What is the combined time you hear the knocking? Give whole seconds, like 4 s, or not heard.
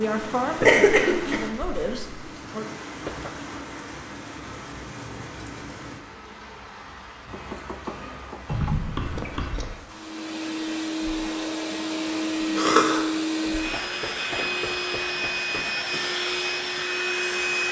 4 s.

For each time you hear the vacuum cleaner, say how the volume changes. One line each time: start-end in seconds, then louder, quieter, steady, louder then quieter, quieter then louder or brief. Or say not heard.
9.8-17.6 steady.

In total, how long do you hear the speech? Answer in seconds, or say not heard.
3 s.